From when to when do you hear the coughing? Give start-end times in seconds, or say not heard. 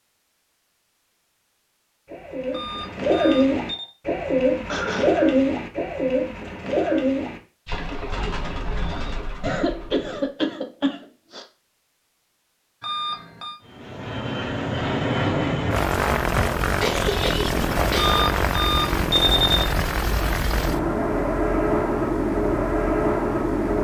4.7-5.1, 9.4-11.4, 16.8-18.2.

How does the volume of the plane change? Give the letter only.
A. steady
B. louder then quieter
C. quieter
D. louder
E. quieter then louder
A.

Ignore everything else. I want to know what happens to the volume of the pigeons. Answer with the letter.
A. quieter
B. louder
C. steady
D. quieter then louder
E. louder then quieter
A.